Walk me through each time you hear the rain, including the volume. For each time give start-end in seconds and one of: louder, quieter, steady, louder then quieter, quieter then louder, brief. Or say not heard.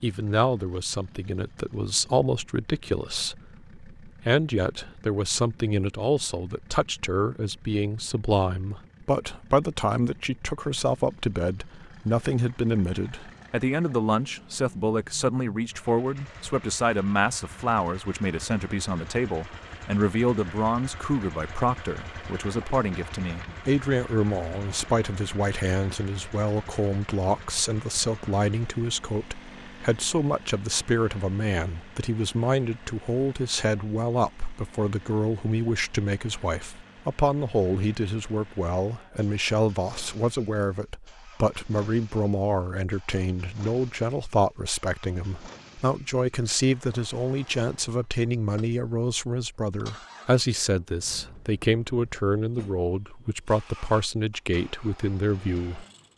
not heard.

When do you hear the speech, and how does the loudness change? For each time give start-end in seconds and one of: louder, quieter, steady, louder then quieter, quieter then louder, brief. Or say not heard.
0.0-56.1 steady.